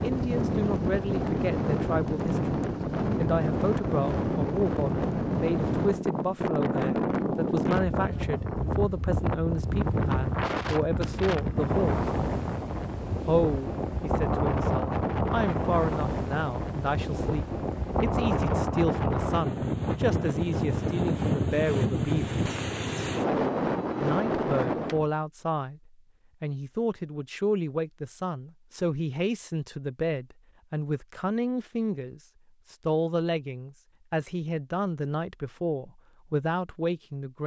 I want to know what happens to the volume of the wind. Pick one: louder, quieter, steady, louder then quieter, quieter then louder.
steady.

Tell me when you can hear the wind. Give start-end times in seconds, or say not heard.
0.0-25.1.